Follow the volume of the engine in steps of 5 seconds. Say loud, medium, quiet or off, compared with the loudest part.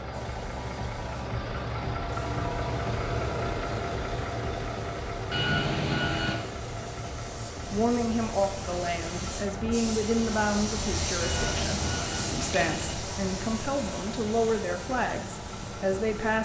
loud, medium, medium, medium.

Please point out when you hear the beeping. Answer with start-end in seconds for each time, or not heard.
5.3-6.4, 11.2-12.9.